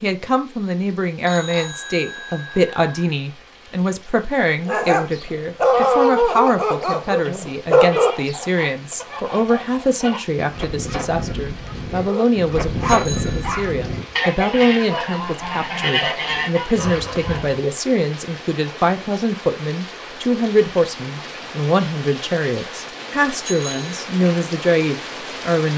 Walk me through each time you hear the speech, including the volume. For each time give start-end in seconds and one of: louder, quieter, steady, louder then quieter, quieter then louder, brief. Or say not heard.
0.0-25.7 steady.